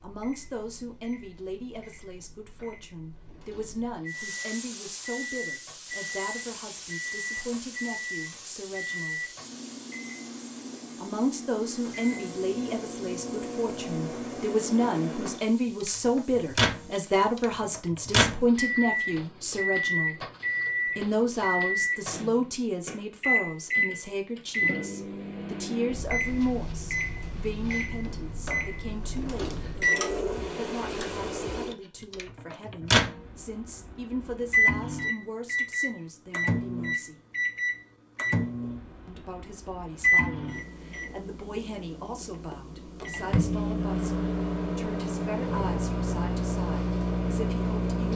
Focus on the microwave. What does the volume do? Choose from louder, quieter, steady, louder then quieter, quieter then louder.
louder.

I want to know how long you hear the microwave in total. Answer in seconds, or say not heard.
48 s.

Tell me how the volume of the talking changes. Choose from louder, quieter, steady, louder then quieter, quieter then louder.
louder then quieter.